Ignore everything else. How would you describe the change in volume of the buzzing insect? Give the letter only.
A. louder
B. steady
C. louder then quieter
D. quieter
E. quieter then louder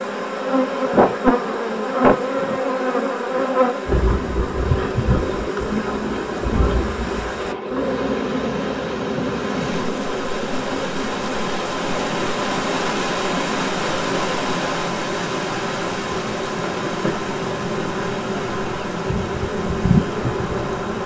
E.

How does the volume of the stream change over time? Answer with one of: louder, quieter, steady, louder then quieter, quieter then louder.
louder then quieter.